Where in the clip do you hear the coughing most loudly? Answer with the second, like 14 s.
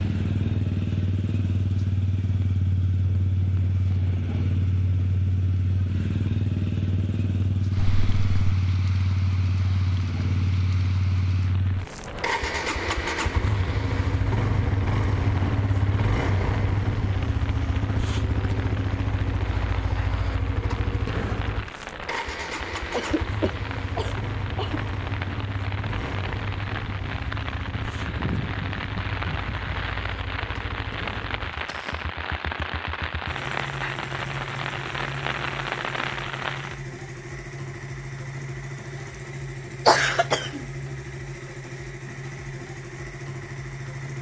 40 s.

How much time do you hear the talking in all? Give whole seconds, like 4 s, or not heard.
not heard.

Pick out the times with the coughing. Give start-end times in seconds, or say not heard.
7.8-8.6, 22.9-24.8, 39.9-40.6.